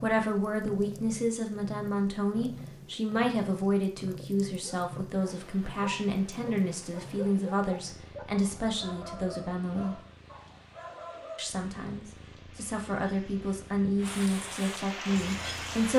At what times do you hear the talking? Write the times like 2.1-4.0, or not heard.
0.0-10.0, 11.3-15.9.